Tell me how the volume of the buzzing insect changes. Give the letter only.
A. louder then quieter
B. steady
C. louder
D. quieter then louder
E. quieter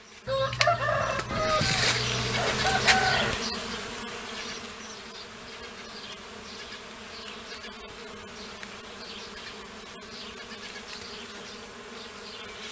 E.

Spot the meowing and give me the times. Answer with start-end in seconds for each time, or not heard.
1.2-1.9.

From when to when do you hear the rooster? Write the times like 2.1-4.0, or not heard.
0.2-3.4.